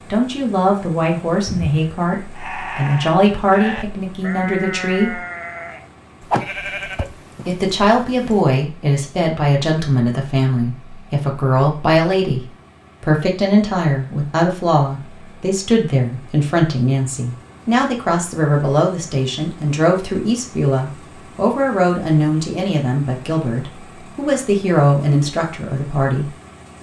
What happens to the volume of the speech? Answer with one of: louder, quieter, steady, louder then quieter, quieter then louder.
steady.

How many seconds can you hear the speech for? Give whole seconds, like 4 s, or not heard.
24 s.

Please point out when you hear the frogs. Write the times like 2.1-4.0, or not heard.
not heard.